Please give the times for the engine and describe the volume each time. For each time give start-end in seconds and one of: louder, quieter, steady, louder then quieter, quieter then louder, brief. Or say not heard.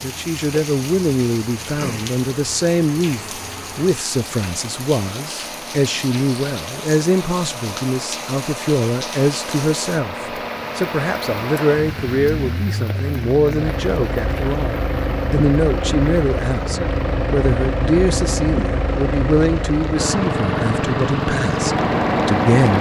0.0-22.7 louder.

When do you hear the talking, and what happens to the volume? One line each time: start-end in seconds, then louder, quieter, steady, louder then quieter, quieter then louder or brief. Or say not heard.
0.0-22.7 steady.